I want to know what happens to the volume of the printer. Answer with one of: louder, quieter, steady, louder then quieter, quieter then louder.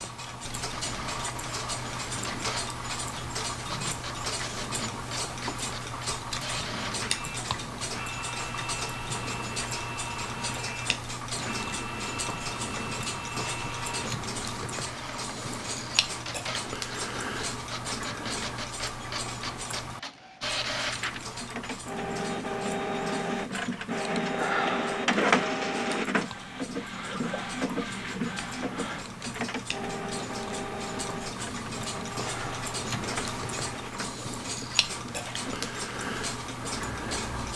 louder then quieter.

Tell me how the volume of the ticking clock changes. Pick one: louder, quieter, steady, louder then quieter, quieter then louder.
quieter then louder.